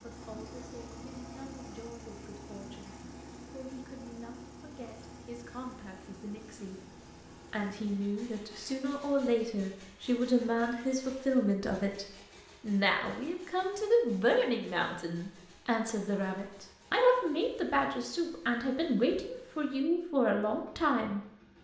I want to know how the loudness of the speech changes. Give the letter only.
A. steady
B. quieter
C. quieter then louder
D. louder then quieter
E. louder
E.